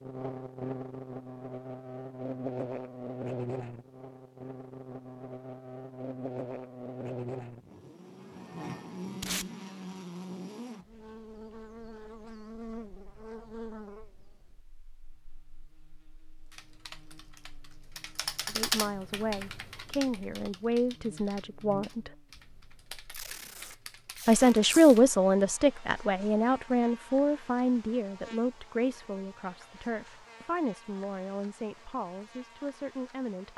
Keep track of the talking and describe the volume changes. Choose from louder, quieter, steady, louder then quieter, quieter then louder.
louder then quieter.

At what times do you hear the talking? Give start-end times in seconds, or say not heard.
18.4-22.1, 24.2-33.5.